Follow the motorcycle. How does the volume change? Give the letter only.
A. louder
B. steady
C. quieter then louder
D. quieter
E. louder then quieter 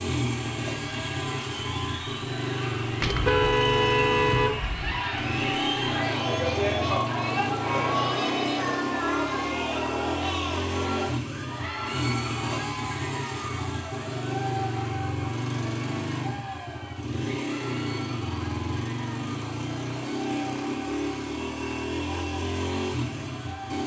B.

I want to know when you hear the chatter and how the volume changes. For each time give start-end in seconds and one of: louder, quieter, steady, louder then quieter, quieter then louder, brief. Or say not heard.
0.2-23.8 louder then quieter.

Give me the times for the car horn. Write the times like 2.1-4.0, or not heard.
3.0-5.0.